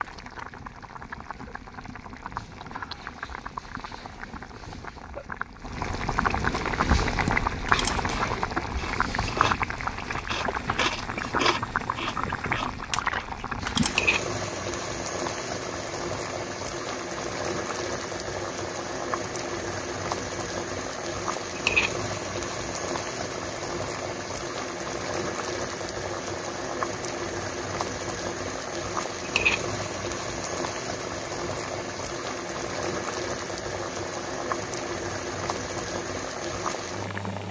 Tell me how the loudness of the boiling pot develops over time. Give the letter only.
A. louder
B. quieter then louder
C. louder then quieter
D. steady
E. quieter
D.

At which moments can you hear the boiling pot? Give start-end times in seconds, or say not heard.
0.0-37.4.